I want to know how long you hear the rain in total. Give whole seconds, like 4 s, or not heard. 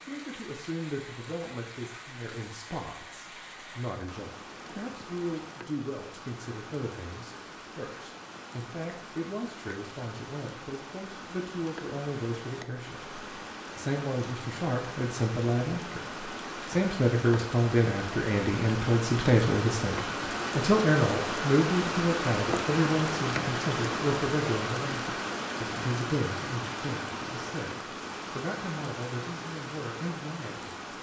31 s.